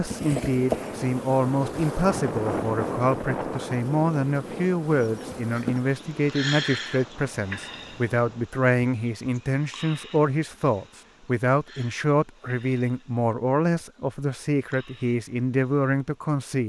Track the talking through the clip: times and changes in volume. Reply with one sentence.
The talking can be heard from 0.0 to 16.6 s, at a steady volume.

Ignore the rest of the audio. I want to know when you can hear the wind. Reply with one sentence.
The wind can be heard from 0.0 to 8.4 s.